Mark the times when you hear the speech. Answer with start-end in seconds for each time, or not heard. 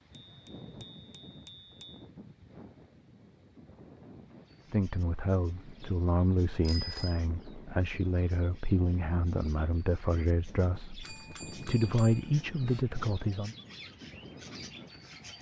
4.7-13.6.